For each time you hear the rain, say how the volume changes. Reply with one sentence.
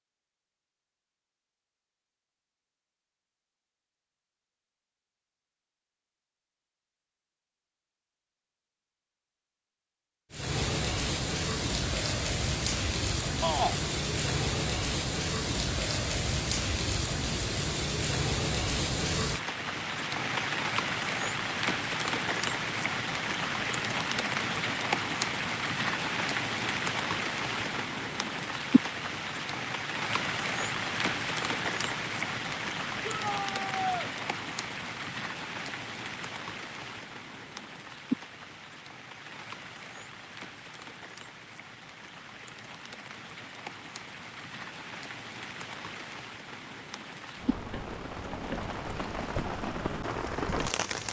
You can hear the rain from 10.3 to 51.0 s, getting quieter.